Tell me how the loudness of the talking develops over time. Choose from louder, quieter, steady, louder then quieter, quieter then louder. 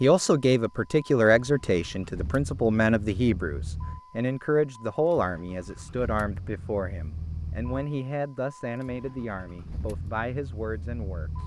quieter.